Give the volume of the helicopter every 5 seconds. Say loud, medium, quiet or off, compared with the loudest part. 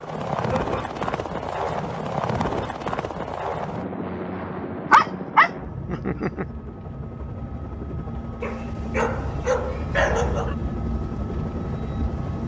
loud, medium, loud.